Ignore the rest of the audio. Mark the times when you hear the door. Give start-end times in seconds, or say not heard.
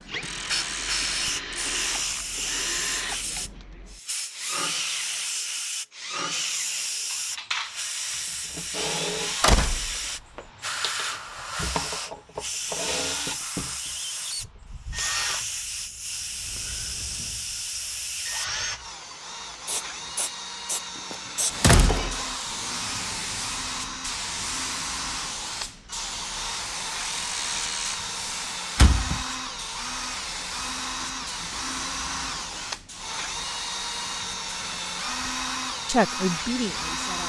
9.4-10.4, 21.1-22.2, 28.8-29.2.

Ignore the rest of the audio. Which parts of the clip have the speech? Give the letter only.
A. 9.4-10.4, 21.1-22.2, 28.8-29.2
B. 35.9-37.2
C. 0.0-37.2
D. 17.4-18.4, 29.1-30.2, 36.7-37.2
B.